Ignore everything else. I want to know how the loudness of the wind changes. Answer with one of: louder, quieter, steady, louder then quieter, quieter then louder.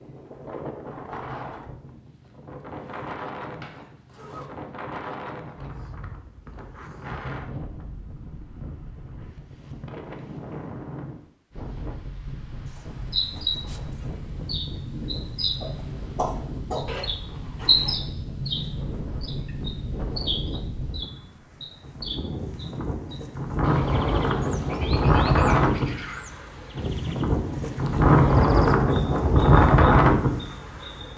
louder.